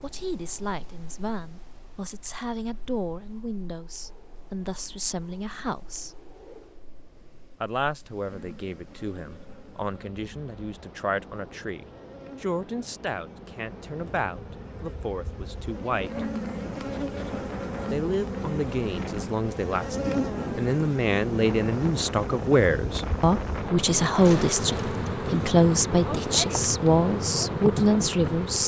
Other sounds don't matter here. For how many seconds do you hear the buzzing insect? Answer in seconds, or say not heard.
20 s.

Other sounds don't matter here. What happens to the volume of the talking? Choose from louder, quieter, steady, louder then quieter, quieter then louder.
louder.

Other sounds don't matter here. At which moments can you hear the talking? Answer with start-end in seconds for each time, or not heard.
0.0-6.2, 7.6-16.2, 17.9-28.6.